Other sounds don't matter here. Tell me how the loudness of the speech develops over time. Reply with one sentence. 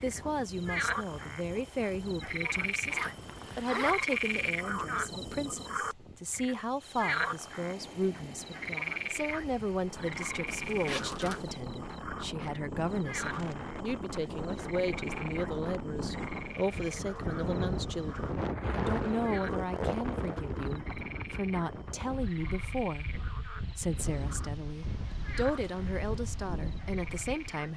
The volume of the speech stays about the same.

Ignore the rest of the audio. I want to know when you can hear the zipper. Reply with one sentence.
You can hear the zipper from 2.9 to 4.5 s, from 10.4 to 11.6 s and from 18.6 to 20.4 s.